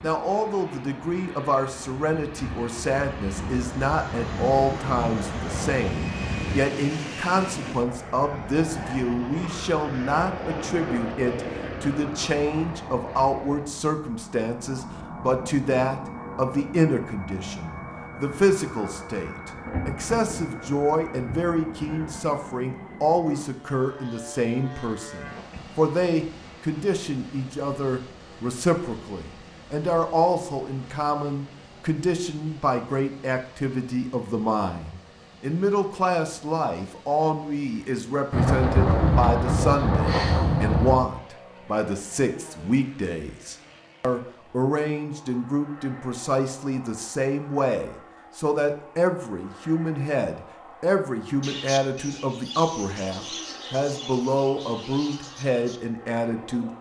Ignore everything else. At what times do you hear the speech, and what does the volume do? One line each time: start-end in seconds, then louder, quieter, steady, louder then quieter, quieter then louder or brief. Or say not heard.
0.0-56.7 steady.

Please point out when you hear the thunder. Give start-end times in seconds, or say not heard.
4.1-6.7, 19.6-22.2, 38.3-41.1.